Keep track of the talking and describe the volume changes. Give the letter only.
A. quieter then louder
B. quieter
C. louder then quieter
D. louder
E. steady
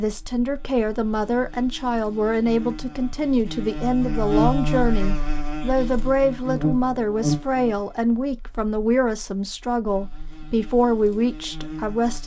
E.